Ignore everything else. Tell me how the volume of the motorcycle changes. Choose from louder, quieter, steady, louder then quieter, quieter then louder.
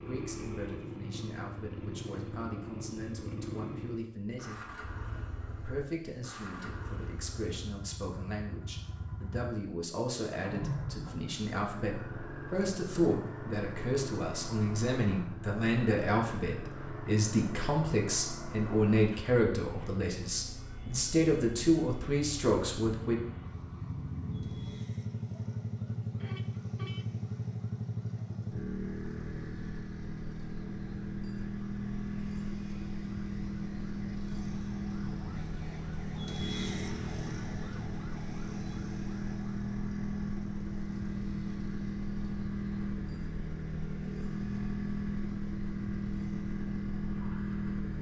louder.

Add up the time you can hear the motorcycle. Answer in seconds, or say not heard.
48 s.